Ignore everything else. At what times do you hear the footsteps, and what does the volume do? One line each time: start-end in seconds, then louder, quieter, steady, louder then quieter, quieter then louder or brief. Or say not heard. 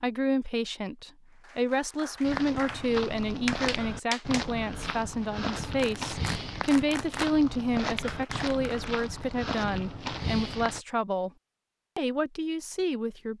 2.2-10.8 steady.